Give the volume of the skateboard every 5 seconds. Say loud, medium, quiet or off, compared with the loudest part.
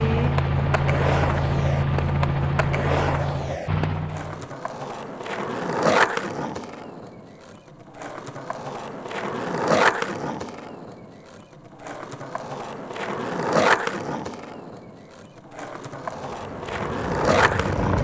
medium, loud, loud, loud.